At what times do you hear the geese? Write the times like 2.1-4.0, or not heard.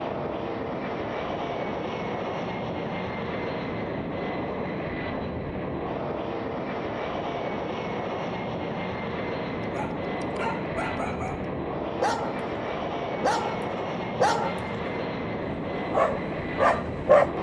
not heard.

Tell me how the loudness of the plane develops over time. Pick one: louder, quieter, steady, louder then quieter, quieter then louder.
steady.